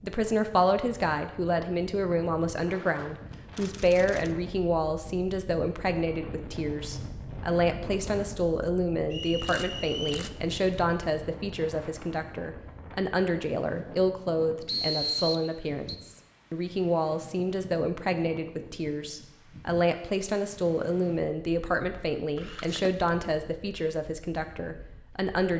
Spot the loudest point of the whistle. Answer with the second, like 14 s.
15 s.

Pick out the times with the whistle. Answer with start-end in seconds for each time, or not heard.
9.1-10.3, 14.7-16.0.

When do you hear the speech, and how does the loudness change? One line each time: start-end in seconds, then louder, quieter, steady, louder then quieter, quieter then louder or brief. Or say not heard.
0.0-25.5 steady.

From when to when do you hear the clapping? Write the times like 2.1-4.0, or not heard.
not heard.